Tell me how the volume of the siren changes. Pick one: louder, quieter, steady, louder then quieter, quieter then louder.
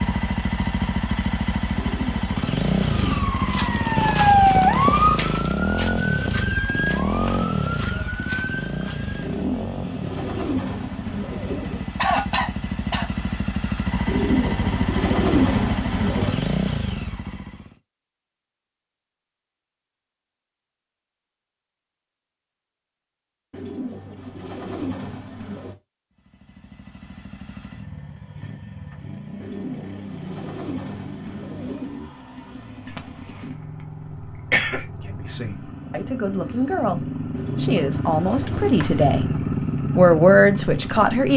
quieter.